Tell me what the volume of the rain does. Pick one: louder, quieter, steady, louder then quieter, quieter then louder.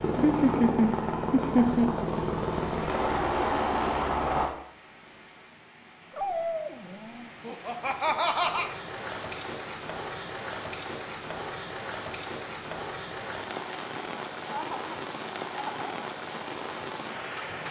louder.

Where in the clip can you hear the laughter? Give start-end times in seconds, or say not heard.
0.1-1.9, 7.5-8.7, 14.5-15.9.